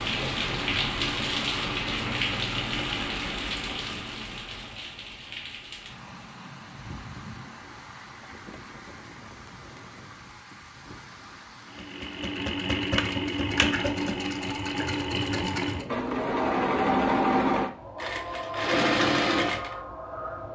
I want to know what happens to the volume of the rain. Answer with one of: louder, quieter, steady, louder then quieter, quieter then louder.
quieter.